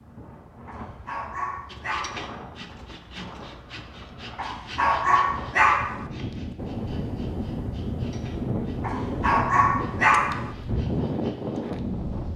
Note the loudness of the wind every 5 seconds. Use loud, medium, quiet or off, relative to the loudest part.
quiet, loud, loud.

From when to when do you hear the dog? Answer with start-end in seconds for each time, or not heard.
0.7-2.3, 4.3-6.0, 8.8-10.5.